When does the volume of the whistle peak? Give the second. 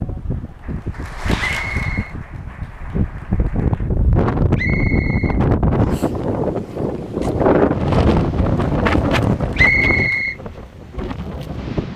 10 s.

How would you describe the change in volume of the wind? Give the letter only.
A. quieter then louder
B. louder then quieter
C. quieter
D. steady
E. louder
B.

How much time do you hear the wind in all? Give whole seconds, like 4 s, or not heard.
12 s.